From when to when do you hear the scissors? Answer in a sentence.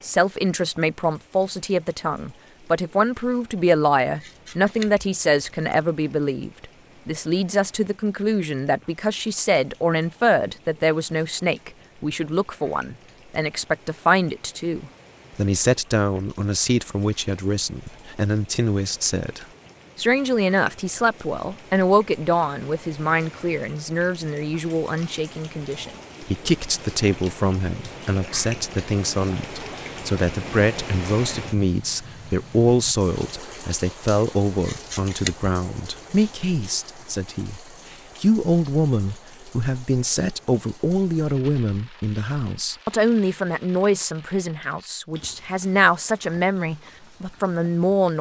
You can hear the scissors from 4.2 to 5.8 s and from 34.6 to 35.5 s.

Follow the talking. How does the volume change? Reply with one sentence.
The volume of the talking stays about the same.